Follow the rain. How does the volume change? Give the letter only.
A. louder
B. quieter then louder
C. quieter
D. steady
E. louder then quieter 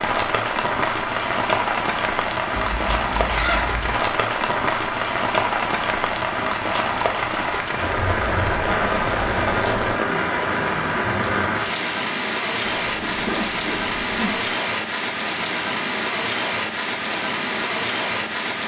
D.